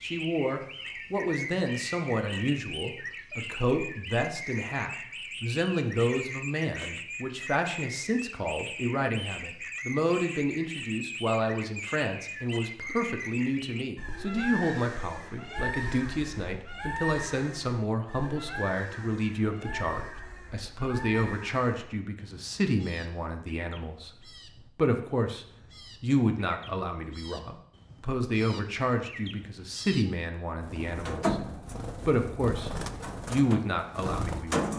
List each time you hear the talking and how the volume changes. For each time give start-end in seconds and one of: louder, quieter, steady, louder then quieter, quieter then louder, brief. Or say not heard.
0.0-34.7 steady.